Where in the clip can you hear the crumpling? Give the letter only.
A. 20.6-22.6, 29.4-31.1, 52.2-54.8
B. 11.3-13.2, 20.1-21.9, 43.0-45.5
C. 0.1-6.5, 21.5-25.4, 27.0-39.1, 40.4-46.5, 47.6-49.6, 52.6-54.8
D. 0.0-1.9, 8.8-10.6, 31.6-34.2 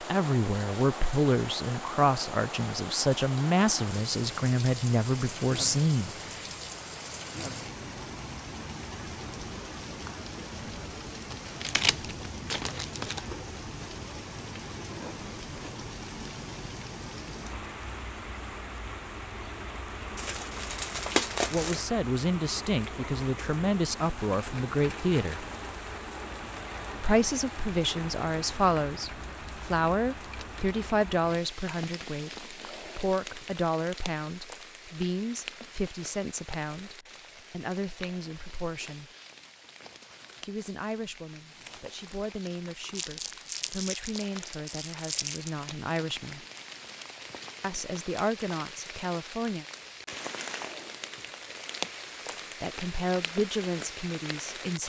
B.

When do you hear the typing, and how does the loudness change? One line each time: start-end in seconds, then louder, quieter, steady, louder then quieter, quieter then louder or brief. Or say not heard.
not heard.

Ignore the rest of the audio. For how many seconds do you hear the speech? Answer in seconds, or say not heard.
33 s.